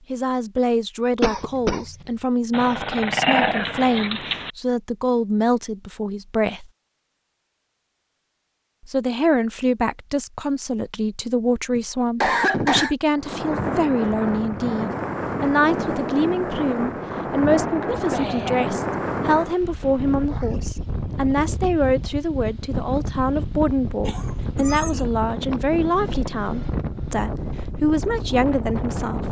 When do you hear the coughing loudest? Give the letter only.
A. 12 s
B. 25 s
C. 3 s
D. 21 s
A.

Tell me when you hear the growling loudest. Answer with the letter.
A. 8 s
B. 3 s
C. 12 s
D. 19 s
B.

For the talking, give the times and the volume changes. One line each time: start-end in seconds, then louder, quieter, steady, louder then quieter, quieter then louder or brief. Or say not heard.
0.1-6.7 steady
8.8-29.2 steady.